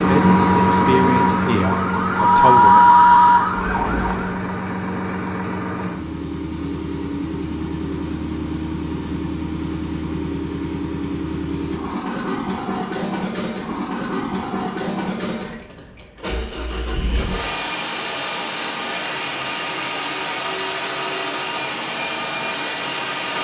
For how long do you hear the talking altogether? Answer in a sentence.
The talking can be heard for 3 seconds in total.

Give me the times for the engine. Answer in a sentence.
You can hear the engine from 0.0 to 23.3 s.